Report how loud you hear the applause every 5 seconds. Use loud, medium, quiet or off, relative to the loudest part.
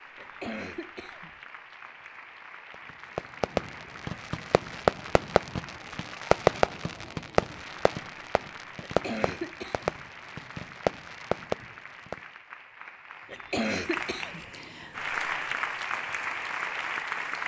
quiet, quiet, medium, loud.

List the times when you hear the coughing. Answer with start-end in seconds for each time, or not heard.
0.1-1.3, 8.8-9.9, 13.2-14.4.